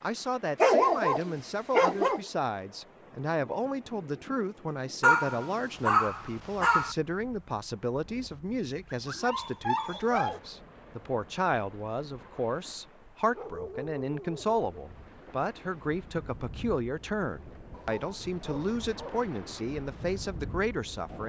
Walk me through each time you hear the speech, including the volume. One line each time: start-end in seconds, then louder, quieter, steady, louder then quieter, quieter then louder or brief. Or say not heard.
0.0-21.2 steady.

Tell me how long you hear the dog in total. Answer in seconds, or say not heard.
8 s.